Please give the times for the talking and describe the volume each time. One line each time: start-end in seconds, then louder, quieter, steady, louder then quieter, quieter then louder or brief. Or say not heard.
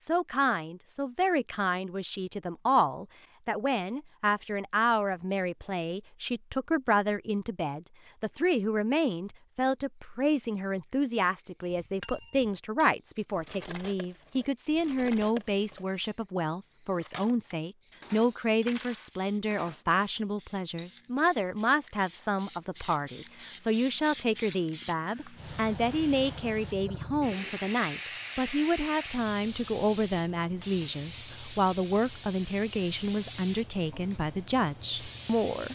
0.0-35.7 steady.